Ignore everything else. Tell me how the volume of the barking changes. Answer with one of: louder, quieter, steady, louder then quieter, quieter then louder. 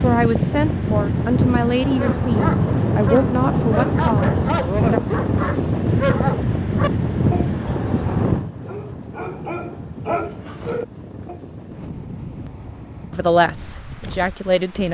quieter then louder.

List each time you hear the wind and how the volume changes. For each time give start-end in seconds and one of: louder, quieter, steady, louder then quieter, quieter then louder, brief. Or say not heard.
0.0-14.8 quieter.